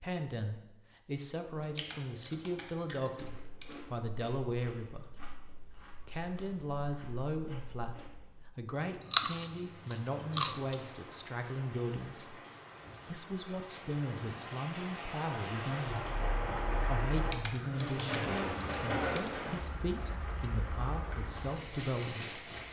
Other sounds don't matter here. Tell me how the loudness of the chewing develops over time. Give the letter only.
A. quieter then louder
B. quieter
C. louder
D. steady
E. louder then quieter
A.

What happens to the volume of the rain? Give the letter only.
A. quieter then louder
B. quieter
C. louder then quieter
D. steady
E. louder
C.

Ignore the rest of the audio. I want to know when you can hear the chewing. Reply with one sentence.
You can hear the chewing from 1.6 to 10.8 s.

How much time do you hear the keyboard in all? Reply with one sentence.
You can hear the keyboard for 4 seconds altogether.